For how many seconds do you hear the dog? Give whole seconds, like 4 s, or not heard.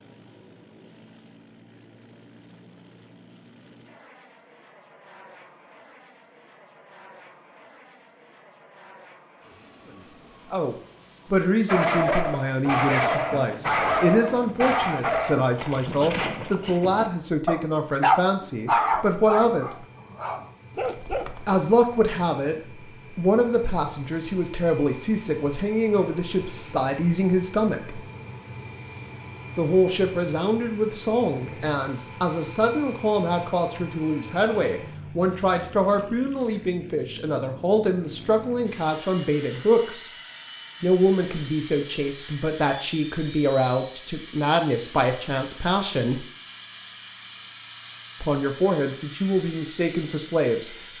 10 s.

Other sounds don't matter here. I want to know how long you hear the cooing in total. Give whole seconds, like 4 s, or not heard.
not heard.